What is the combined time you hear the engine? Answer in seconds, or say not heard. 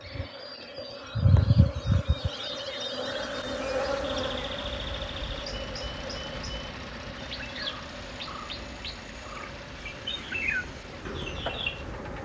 9 s.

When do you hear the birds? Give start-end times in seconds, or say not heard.
0.0-12.2.